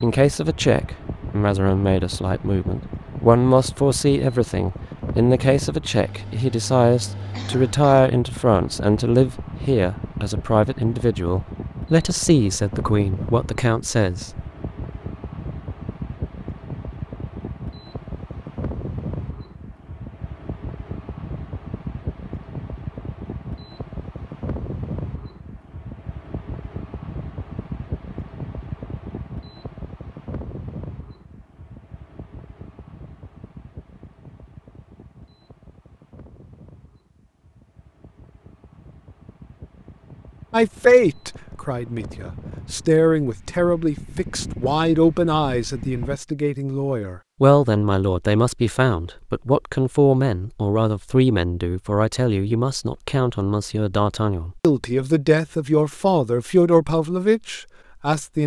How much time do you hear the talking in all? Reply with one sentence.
You can hear the talking for 32 seconds altogether.